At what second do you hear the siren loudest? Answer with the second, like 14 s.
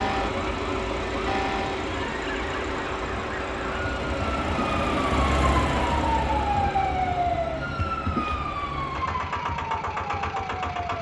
7 s.